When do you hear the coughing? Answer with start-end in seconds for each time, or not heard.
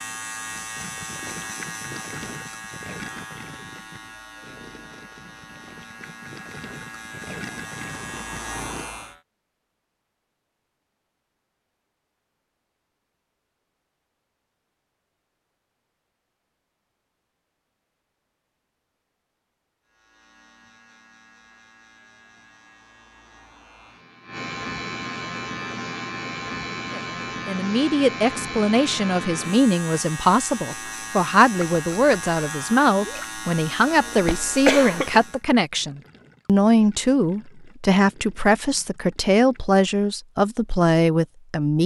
34.2-35.2.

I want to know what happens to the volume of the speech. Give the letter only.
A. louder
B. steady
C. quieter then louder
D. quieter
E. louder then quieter
B.